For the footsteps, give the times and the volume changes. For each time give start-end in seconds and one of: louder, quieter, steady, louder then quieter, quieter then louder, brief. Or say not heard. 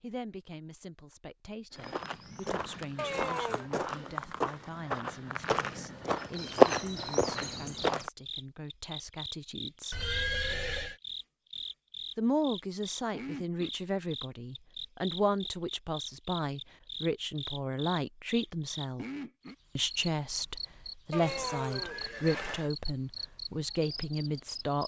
1.8-8.1 louder.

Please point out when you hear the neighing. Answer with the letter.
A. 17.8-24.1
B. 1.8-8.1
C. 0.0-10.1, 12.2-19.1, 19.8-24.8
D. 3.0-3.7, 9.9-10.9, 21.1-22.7
D.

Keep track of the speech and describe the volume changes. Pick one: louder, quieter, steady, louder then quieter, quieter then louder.
louder.